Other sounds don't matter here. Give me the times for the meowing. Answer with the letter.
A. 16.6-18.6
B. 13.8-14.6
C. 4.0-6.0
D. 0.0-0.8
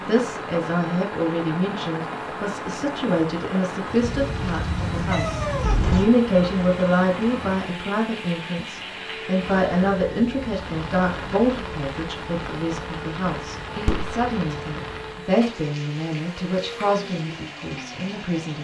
C.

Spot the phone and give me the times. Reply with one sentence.
You can hear the phone from 13.8 to 14.6 s.